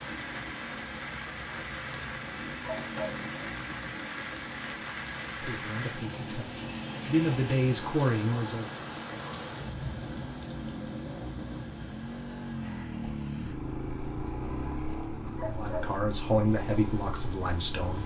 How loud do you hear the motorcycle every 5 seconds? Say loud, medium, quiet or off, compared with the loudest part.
medium, medium, loud, loud.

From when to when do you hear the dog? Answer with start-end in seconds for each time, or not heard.
2.6-3.2, 15.3-16.0.